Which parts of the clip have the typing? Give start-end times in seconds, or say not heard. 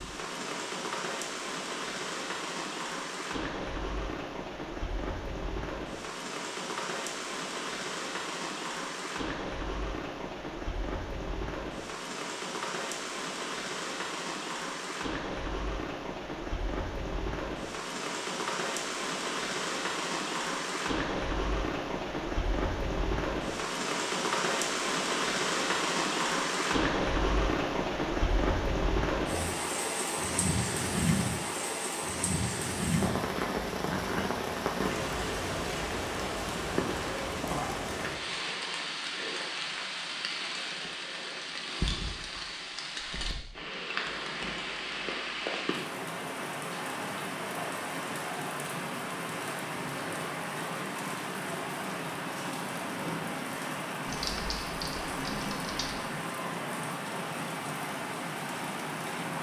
54.0-56.0.